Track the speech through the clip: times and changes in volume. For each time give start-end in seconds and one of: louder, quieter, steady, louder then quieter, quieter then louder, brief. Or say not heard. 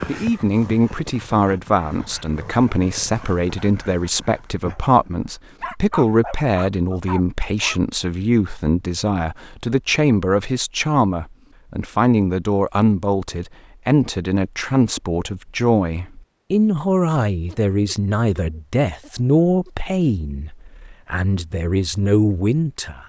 0.1-23.0 steady.